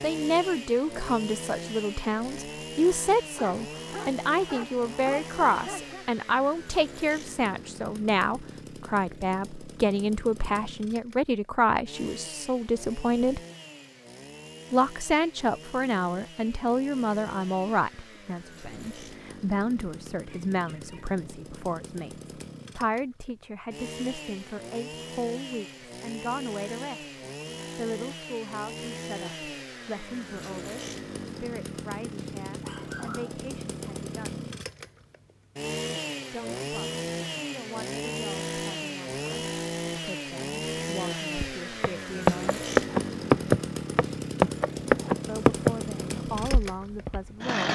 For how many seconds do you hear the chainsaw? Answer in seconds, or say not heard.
48 s.